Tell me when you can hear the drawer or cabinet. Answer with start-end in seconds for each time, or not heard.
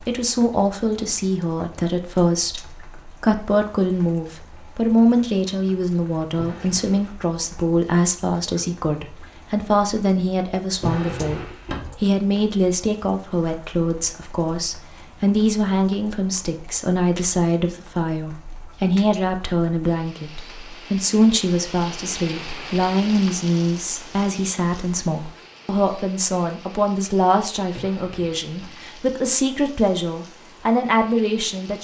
6.3-7.2, 10.7-11.9, 27.6-28.7.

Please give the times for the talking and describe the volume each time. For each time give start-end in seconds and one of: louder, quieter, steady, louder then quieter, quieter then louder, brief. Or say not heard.
0.1-11.4 steady
12.0-31.7 steady.